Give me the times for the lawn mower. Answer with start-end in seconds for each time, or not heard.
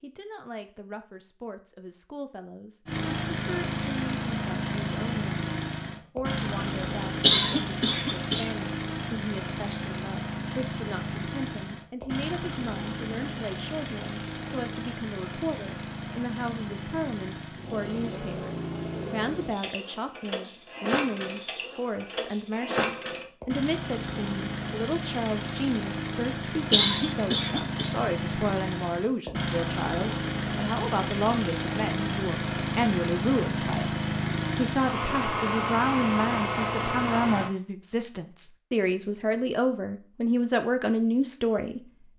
2.9-37.5.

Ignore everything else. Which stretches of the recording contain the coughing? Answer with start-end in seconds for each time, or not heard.
7.2-8.5, 26.7-27.9.